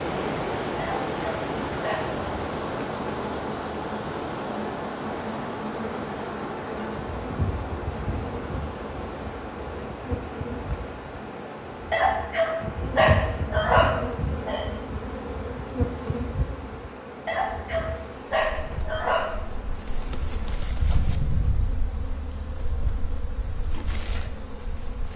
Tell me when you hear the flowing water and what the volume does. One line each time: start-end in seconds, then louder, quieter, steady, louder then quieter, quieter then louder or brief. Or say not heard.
0.0-20.6 quieter.